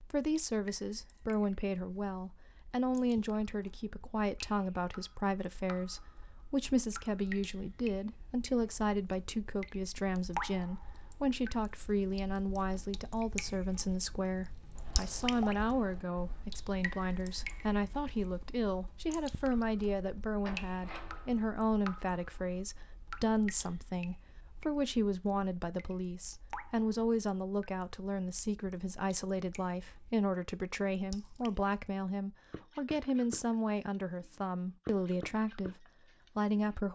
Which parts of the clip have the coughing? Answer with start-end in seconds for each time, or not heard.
not heard.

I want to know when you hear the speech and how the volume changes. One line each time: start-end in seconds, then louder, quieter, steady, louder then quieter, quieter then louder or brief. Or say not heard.
0.1-36.9 steady.